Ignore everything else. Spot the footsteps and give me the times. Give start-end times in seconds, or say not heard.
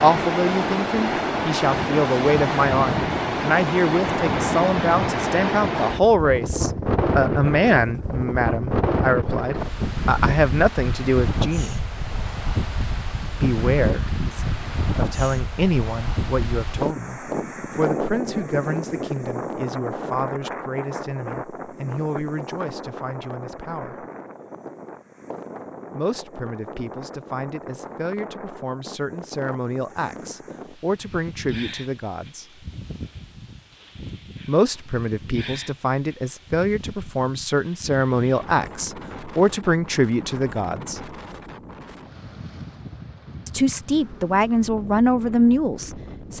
not heard.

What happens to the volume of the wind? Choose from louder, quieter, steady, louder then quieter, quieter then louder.
quieter.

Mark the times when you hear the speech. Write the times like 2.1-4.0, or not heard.
0.0-11.8, 13.3-24.1, 25.9-32.5, 34.5-41.0, 43.5-46.3.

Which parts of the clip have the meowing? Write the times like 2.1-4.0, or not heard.
not heard.